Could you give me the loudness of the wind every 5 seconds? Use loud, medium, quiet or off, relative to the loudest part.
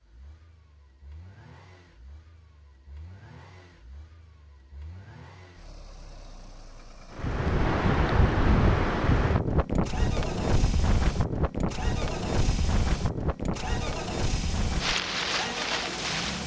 off, loud, medium, medium.